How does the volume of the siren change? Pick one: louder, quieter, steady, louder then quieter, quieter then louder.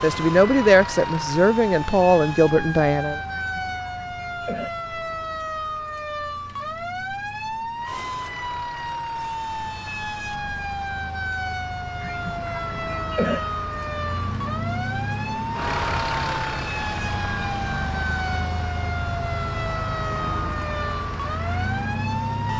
steady.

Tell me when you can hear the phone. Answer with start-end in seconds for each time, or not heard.
not heard.